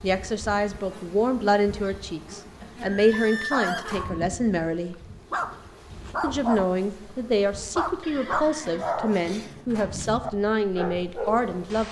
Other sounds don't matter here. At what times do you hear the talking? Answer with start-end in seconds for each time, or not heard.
0.0-5.0, 6.2-11.8.